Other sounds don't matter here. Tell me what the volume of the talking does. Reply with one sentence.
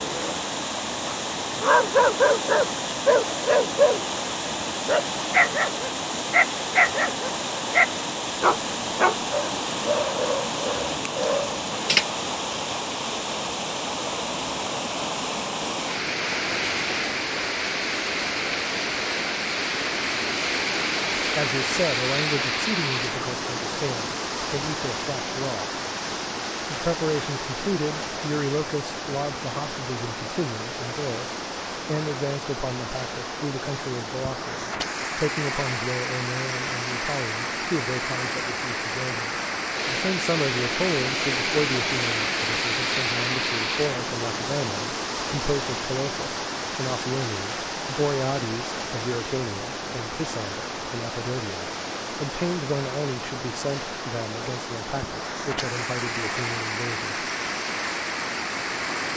The volume of the talking stays about the same.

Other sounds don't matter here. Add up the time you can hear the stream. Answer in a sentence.
You can hear the stream for 59 seconds altogether.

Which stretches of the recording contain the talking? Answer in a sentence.
The talking can be heard from 21.1 to 25.7 s and from 26.7 to 57.1 s.